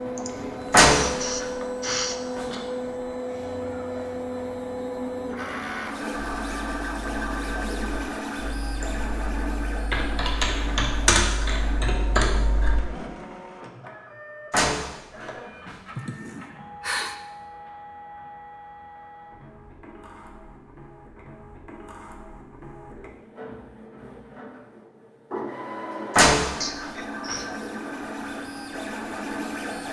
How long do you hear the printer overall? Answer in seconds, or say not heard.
30 s.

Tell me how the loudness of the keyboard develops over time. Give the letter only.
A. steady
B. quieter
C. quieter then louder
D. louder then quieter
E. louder
E.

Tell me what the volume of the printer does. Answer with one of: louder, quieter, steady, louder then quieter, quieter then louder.
quieter then louder.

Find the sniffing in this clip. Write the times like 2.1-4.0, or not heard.
0.1-2.2, 15.9-17.1, 26.6-27.5.